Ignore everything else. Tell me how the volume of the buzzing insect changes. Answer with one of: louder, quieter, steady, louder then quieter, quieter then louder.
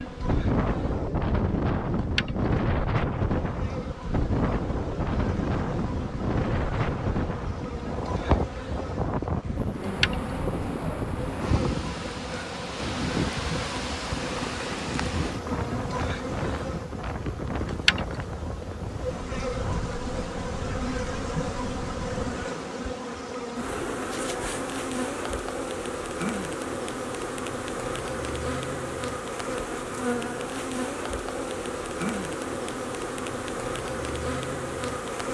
louder.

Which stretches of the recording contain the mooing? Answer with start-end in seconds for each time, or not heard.
not heard.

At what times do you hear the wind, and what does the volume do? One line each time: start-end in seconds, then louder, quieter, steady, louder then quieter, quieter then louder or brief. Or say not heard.
0.0-22.6 quieter.